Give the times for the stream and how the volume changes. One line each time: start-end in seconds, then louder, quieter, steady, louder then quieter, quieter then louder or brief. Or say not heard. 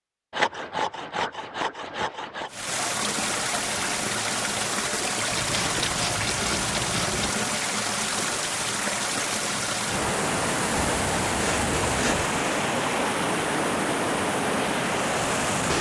2.5-15.7 steady.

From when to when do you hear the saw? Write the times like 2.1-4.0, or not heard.
0.3-2.5, 5.3-7.3, 10.8-12.3.